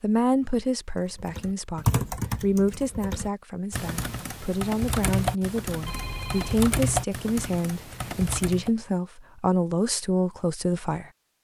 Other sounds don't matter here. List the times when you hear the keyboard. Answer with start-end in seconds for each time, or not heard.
1.1-8.7.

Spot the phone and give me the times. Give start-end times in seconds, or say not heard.
5.8-6.6.